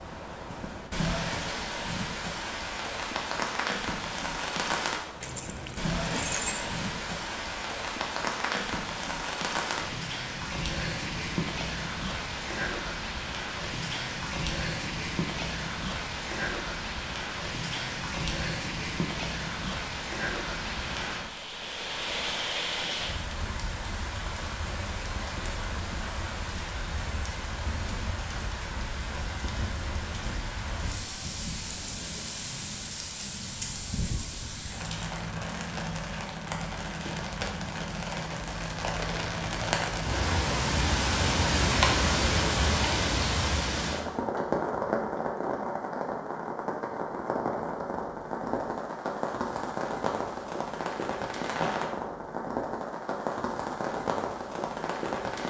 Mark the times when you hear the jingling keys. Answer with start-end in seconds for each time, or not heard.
5.2-6.8.